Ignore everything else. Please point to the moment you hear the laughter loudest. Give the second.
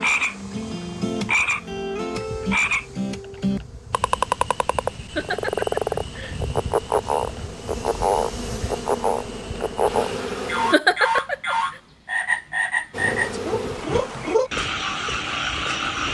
11 s.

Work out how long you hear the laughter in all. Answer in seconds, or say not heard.
2 s.